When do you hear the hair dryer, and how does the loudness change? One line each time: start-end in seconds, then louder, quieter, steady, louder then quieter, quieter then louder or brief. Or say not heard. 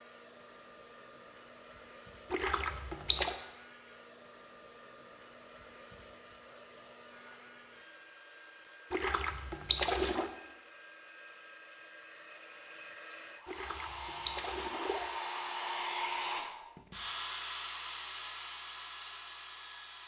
0.0-20.0 louder.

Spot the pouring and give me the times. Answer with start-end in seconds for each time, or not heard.
2.3-3.4, 8.9-10.3, 13.4-15.1.